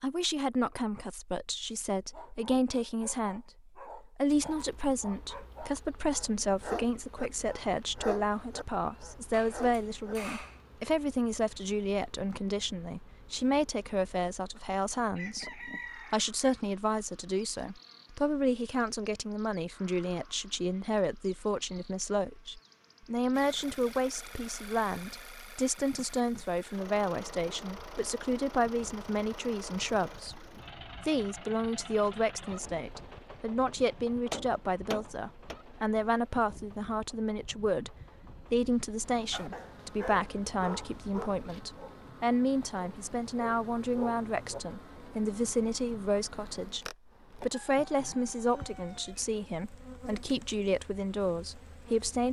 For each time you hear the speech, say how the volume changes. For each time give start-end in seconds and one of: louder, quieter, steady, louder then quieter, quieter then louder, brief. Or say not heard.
0.0-52.2 steady.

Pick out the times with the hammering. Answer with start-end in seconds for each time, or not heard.
9.3-10.6, 33.9-35.5.